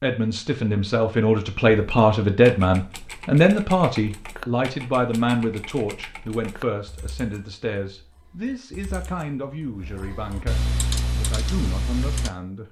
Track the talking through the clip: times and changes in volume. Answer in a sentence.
You can hear the talking from 0.0 to 12.6 s, getting quieter.